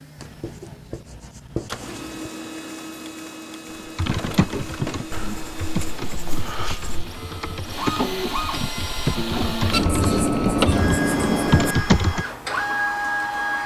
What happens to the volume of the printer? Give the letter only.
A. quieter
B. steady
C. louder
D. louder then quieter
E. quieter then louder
C.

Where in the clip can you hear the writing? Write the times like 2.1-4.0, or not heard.
0.2-2.3, 5.1-7.0, 9.7-11.8.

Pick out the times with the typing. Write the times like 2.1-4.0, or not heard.
3.8-12.2.